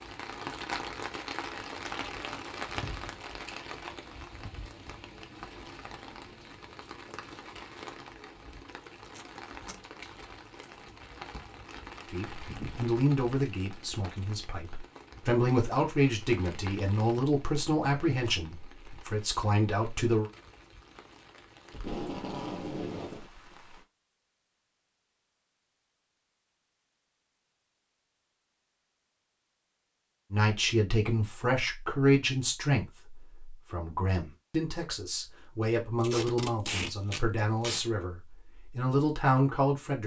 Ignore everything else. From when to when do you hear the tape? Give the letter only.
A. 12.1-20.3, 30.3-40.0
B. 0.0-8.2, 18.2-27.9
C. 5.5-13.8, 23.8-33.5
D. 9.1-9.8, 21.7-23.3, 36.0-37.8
D.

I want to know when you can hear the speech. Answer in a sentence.
The speech can be heard from 12.1 to 20.3 s and from 30.3 to 40.0 s.